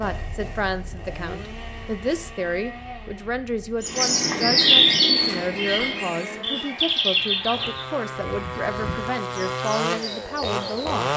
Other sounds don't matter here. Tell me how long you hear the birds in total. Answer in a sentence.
The birds can be heard for 7 seconds in total.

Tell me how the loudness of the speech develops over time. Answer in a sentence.
The volume of the speech stays about the same.